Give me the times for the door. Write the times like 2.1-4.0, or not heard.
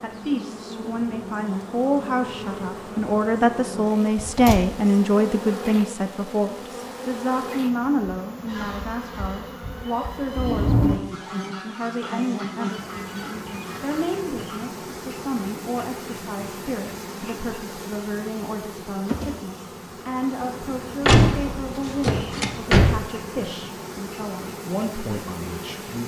4.2-4.7, 10.3-11.0, 21.1-23.0.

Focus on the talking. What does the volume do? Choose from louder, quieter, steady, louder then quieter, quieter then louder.
quieter.